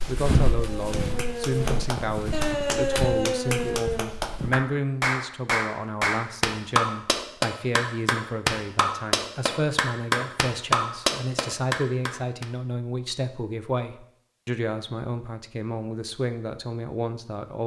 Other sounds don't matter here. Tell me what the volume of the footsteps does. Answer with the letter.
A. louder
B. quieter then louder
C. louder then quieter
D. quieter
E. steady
D.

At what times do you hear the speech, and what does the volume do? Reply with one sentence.
The speech can be heard from 0.1 to 17.6 s, at a steady volume.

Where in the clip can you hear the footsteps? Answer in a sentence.
You can hear the footsteps from 0.0 to 4.7 s.